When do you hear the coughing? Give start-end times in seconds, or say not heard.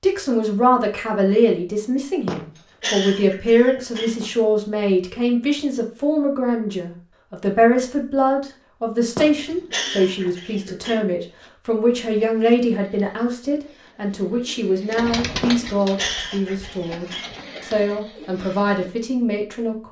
2.2-4.2, 9.2-11.0, 15.4-17.4.